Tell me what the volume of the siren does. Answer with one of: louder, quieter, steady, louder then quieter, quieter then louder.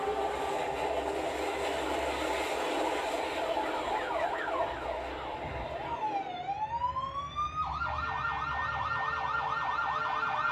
louder.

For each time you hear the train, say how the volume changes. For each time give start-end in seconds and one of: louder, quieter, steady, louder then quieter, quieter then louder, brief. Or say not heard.
0.0-10.4 quieter then louder.